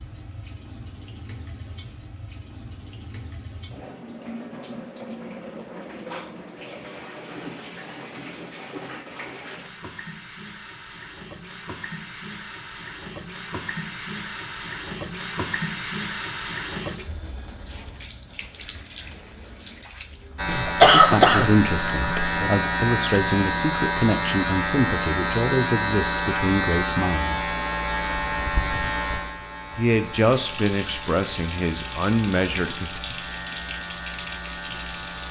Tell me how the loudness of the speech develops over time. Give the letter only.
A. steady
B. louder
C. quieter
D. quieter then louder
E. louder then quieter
A.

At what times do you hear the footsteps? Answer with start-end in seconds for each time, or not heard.
not heard.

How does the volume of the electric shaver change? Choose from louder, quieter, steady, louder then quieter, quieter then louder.
quieter.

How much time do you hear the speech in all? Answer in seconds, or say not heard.
10 s.